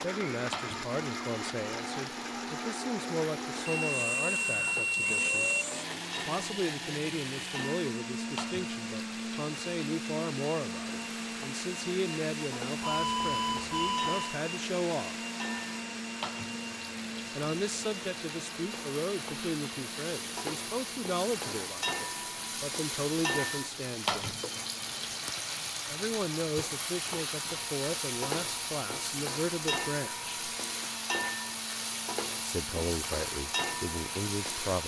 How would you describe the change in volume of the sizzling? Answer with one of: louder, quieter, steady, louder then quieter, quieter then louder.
louder.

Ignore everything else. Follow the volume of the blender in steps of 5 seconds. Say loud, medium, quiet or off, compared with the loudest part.
loud, loud, loud, loud, medium, medium, medium.